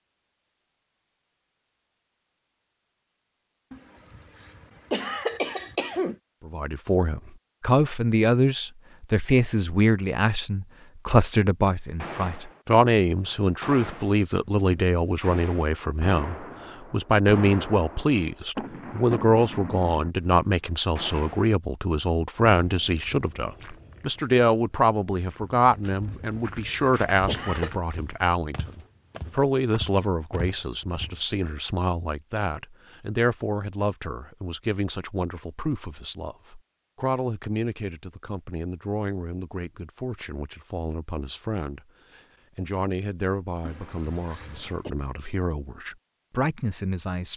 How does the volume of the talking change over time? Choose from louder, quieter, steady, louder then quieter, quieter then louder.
quieter.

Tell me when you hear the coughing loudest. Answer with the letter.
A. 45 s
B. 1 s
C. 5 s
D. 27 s
C.